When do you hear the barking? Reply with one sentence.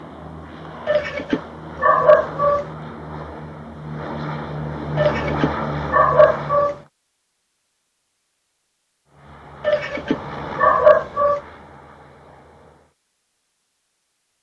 You can hear the barking from 0.8 to 2.6 s, from 5.0 to 6.8 s and from 9.6 to 11.4 s.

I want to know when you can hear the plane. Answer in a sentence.
The plane can be heard from 0.0 to 6.9 s and from 9.1 to 12.9 s.